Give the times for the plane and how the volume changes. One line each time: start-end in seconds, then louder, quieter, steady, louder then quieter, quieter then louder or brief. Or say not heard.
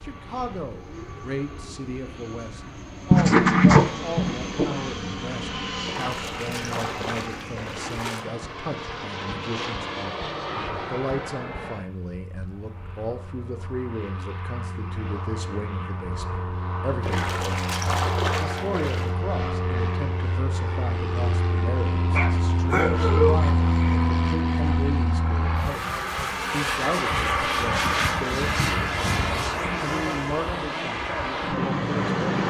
0.0-32.4 louder.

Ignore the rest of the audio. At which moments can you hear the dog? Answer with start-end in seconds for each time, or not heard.
3.1-4.8, 22.1-24.0.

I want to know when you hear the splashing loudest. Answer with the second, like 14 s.
18 s.